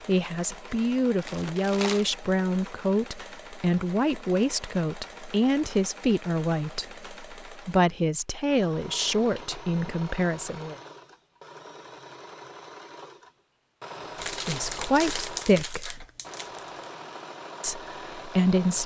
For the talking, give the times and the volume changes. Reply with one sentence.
The talking can be heard from 0.1 to 10.8 s, at a steady volume; briefly from 14.3 to 16.1 s; and briefly from 17.6 to 18.8 s.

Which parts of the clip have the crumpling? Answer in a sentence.
You can hear the crumpling from 0.8 to 2.1 s and from 14.2 to 16.7 s.